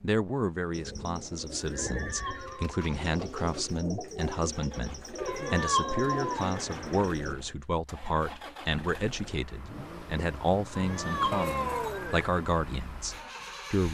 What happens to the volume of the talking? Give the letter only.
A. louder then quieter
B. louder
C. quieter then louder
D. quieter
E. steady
E.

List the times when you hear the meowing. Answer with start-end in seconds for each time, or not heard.
1.8-2.8, 5.2-6.5, 10.8-12.0.